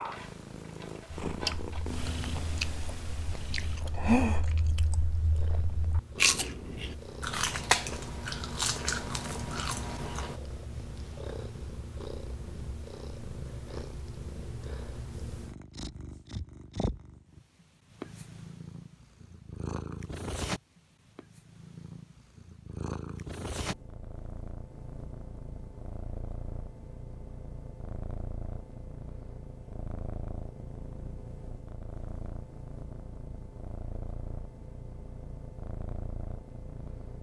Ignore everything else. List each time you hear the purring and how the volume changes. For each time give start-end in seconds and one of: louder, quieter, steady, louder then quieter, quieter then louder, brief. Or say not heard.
0.0-37.1 steady.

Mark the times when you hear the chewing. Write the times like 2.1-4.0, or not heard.
1.2-10.4.